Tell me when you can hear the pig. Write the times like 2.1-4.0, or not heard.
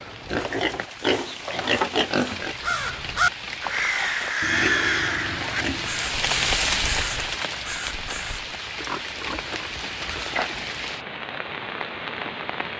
0.2-2.5, 4.4-6.0, 8.8-10.8.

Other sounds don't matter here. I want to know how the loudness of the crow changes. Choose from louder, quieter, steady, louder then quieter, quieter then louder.
quieter.